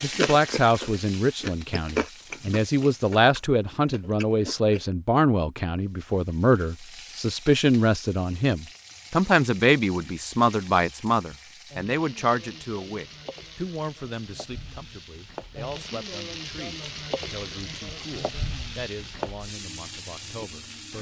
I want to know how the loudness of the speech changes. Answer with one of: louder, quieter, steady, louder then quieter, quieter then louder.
quieter.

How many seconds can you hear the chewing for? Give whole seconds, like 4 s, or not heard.
5 s.